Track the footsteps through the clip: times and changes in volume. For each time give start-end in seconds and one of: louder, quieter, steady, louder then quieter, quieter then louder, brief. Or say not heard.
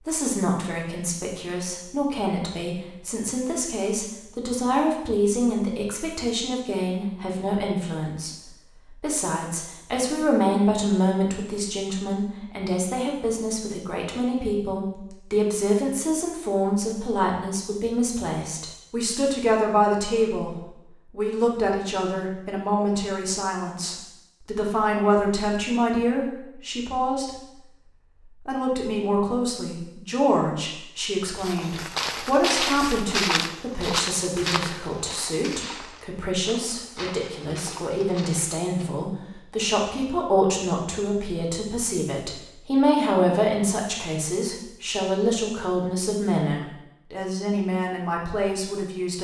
31.4-39.0 quieter.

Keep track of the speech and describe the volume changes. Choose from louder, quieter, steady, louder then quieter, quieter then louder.
steady.